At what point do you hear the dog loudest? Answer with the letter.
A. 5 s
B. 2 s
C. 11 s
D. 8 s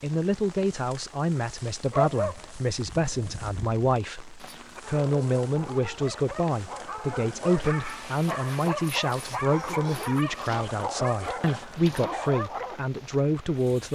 B.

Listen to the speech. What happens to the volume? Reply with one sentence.
The loudness of the speech stays about the same.